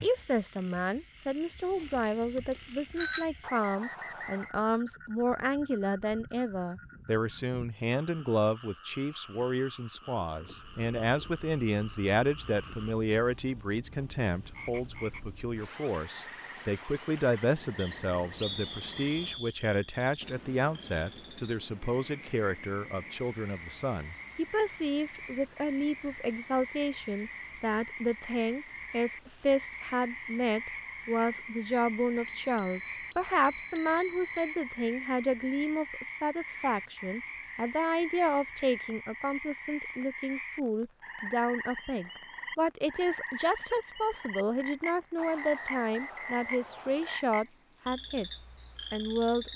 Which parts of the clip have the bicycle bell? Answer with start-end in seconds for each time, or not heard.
1.8-3.2, 32.2-34.5.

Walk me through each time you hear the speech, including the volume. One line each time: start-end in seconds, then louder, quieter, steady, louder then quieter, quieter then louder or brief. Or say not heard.
0.0-48.3 steady
48.9-49.5 brief.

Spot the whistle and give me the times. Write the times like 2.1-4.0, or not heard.
3.4-4.5, 17.8-19.6, 45.1-47.2.